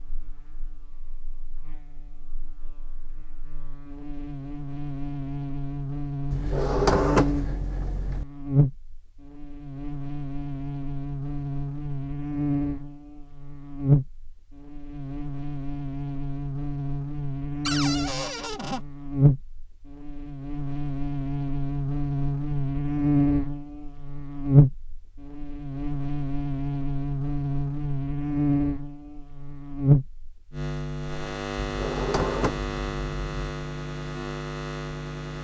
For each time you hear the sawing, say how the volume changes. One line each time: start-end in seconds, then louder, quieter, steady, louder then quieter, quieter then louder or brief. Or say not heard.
not heard.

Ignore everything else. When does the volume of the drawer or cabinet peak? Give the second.
7 s.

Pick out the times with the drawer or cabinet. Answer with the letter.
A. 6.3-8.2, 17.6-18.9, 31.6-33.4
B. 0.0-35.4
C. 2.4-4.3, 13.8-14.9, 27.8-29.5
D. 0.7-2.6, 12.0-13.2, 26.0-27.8
A.